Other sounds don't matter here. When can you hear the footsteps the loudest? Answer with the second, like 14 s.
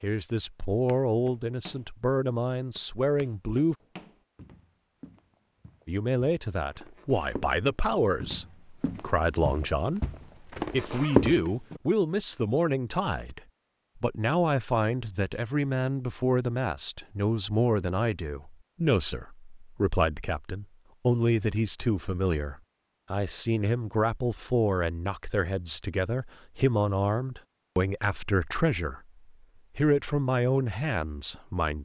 11 s.